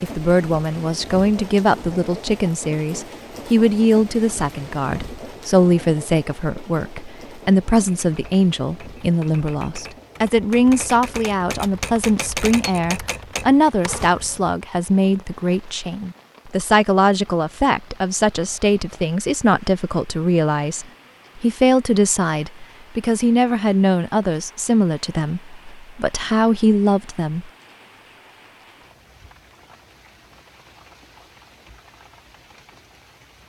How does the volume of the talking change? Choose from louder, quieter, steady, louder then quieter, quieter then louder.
steady.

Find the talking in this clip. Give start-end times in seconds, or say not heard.
0.0-27.5.